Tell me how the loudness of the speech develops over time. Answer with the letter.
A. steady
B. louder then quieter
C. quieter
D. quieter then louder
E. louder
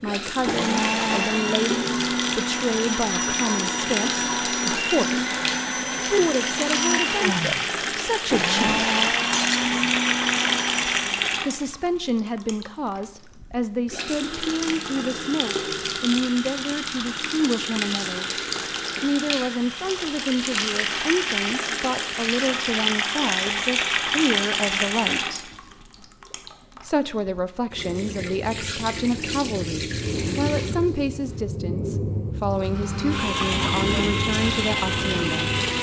A.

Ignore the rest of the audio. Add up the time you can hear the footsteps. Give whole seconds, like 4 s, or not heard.
not heard.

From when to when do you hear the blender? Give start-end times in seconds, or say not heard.
0.4-11.1, 32.6-35.7.